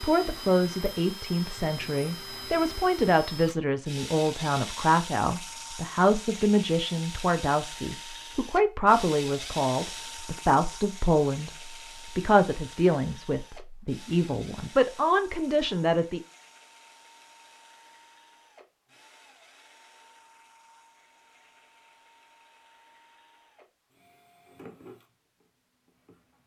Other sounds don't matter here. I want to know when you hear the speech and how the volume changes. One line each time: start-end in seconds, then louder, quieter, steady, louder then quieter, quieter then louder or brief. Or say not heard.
0.0-16.2 steady.